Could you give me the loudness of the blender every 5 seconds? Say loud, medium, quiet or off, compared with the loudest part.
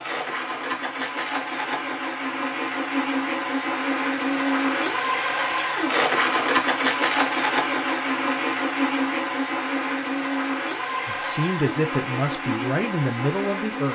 loud, loud, medium.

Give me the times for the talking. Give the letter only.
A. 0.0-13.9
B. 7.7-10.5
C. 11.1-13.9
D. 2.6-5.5
C.